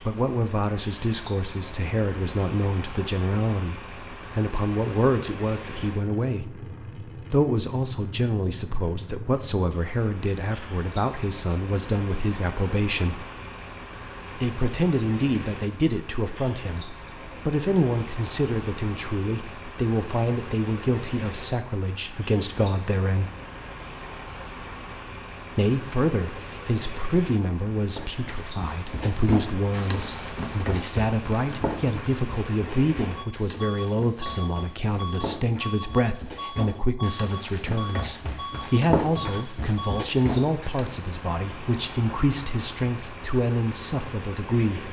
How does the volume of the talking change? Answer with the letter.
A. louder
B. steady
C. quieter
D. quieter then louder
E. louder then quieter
B.